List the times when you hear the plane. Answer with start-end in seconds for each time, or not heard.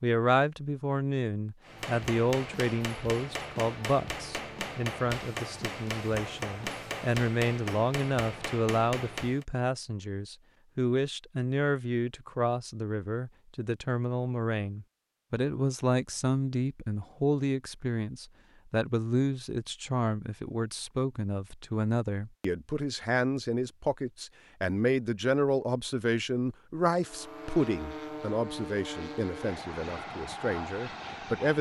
26.9-31.5.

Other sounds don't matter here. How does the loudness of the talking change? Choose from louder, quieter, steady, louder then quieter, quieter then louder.
steady.